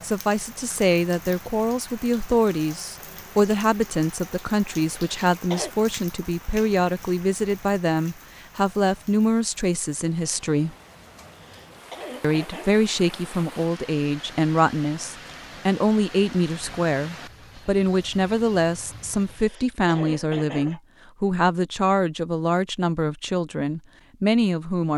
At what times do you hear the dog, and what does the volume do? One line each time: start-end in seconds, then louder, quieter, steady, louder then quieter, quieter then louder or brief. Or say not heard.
not heard.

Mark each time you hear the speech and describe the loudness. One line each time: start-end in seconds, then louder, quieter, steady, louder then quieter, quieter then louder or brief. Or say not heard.
0.0-10.8 steady
12.2-24.9 steady.